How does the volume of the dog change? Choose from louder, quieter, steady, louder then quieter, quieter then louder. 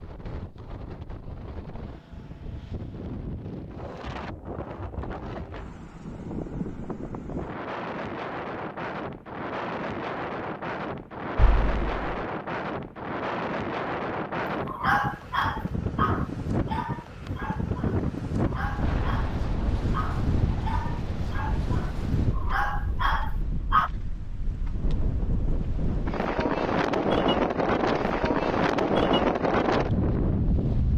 quieter then louder.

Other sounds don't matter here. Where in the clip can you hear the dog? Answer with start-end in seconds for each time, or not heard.
14.7-23.9.